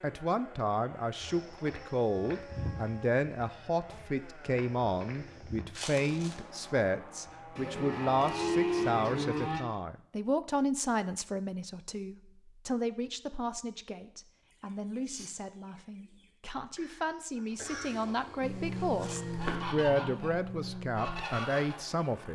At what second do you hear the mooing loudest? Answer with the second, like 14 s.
9 s.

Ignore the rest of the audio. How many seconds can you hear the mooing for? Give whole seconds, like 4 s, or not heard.
4 s.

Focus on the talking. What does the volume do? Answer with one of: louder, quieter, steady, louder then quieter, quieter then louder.
quieter then louder.